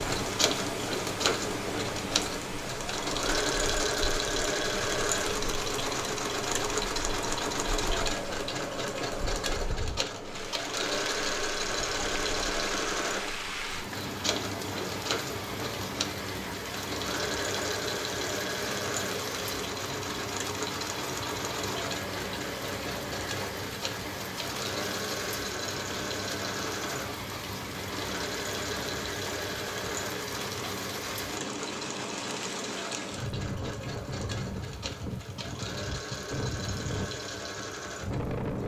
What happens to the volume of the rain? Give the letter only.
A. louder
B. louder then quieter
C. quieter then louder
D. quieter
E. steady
E.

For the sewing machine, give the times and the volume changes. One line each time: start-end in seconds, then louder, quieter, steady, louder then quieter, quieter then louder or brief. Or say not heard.
0.0-38.6 quieter.